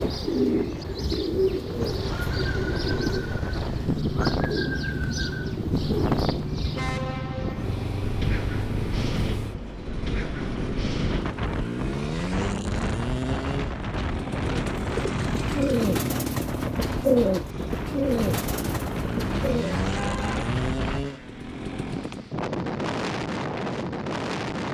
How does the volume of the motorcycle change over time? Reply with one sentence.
The loudness of the motorcycle stays about the same.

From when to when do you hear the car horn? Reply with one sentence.
You can hear the car horn from 6.7 to 7.7 s and from 19.8 to 20.5 s.